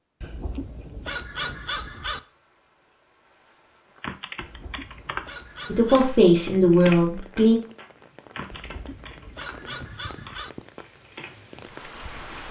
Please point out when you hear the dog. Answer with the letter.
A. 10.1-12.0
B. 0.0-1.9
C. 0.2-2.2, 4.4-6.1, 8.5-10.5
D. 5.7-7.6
C.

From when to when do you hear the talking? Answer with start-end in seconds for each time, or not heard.
5.7-7.6.